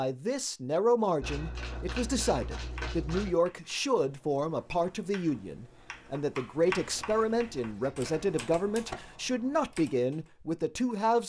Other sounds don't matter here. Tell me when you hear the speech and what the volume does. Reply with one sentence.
The speech can be heard from 0.0 to 11.2 s, at a steady volume.